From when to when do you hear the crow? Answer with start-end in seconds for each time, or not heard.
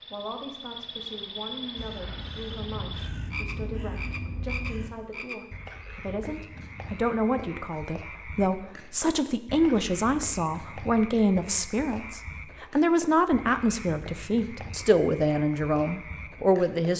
1.8-4.9.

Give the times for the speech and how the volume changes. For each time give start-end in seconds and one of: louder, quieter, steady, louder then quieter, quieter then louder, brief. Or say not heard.
0.1-16.9 louder.